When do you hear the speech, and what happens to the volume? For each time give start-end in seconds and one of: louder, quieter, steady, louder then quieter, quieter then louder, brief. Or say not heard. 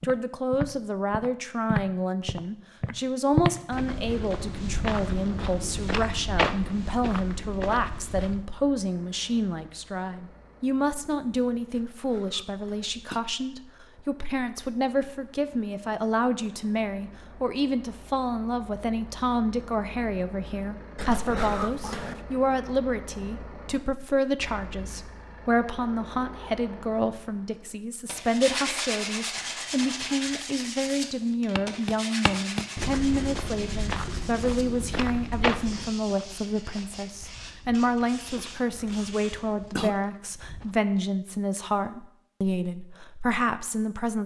0.0-44.2 steady.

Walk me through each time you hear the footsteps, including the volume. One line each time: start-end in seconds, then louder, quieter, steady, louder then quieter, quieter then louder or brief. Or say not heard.
0.0-8.4 quieter
31.6-40.8 quieter.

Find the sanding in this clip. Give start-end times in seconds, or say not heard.
28.1-39.9.